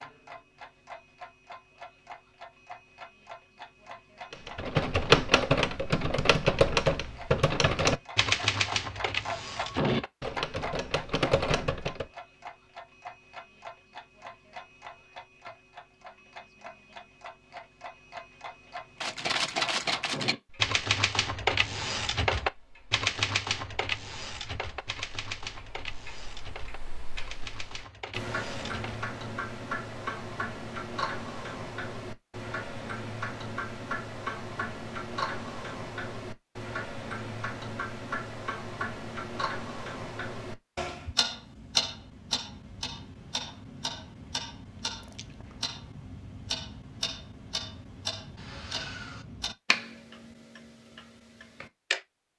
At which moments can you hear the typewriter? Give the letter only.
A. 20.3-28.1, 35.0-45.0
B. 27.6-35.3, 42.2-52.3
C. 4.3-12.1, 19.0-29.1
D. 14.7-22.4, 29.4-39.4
C.